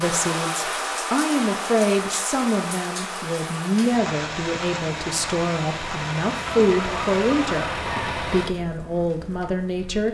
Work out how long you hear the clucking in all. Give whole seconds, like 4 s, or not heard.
2 s.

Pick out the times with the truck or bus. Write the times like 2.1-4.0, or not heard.
3.9-8.6.